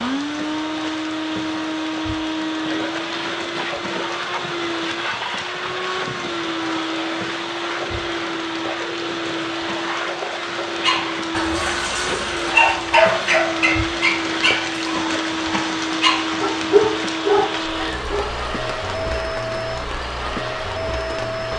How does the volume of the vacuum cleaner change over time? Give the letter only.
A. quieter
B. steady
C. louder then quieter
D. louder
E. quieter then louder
B.